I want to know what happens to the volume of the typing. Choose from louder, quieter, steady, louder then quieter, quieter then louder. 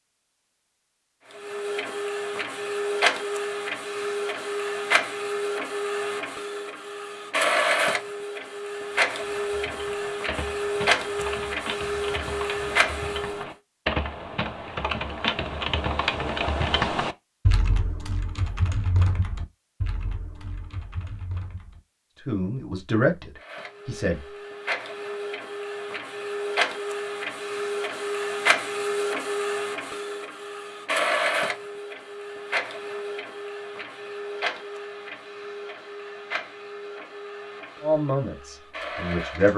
louder then quieter.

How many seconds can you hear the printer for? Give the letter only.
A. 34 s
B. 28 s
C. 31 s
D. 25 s
B.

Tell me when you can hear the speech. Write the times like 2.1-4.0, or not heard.
22.2-24.2, 37.8-39.5.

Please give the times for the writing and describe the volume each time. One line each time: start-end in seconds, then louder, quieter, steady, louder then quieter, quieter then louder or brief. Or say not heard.
not heard.